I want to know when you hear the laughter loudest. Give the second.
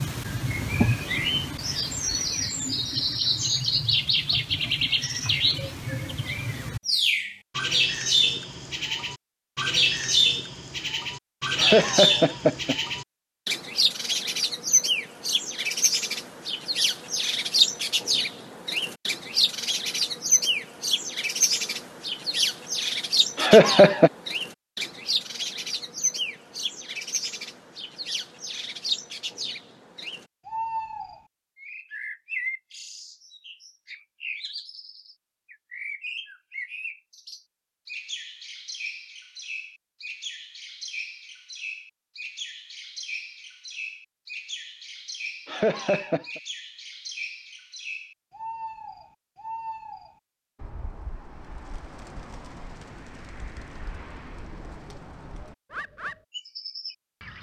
24 s.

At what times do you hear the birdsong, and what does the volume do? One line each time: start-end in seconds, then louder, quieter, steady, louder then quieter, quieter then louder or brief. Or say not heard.
0.0-57.3 quieter.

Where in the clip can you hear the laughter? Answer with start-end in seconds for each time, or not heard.
11.6-12.8, 23.4-24.1, 45.5-46.4.